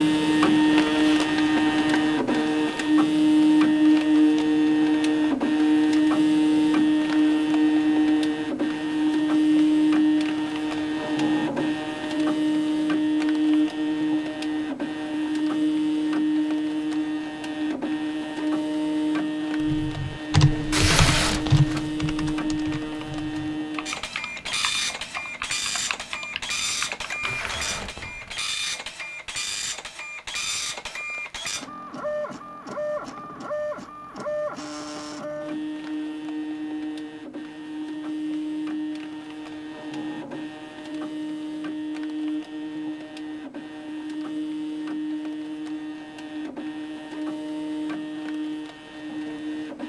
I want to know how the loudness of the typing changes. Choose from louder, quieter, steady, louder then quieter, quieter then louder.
quieter.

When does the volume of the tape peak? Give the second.
21 s.